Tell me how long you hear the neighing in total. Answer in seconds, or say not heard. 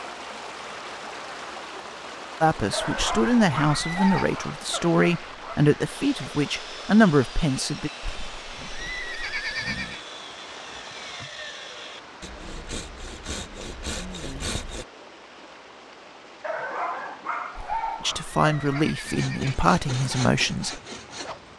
5 s.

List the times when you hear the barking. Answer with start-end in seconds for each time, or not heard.
2.7-5.6, 16.4-18.9.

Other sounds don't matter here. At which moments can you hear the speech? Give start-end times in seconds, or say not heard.
2.4-7.9, 18.0-20.8.